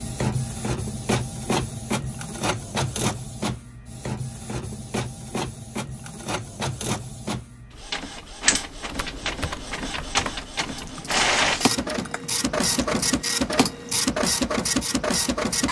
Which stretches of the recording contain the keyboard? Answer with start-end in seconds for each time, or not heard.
8.8-14.1.